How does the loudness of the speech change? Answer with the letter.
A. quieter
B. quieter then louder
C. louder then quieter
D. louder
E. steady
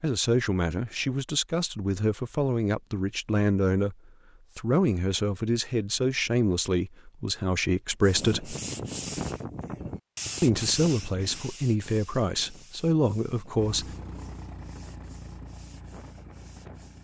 E.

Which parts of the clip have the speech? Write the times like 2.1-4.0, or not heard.
0.0-4.0, 4.5-8.6, 10.4-13.9.